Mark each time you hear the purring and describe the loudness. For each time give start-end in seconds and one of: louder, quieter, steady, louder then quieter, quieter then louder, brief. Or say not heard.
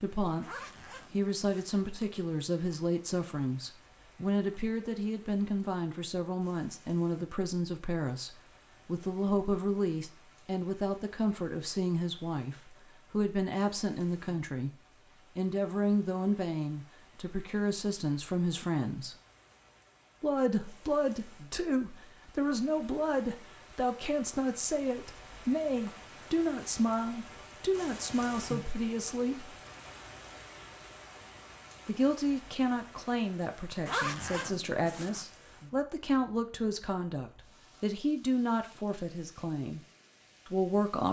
not heard.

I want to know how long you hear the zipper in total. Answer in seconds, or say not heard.
3 s.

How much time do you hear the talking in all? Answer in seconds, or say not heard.
37 s.